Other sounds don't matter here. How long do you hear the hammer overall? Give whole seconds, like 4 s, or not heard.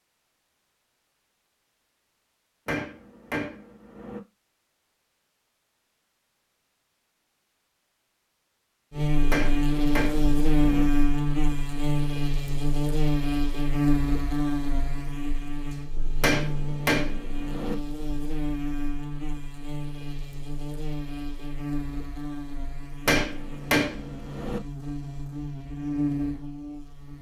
6 s.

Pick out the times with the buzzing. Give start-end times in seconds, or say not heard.
8.9-27.1.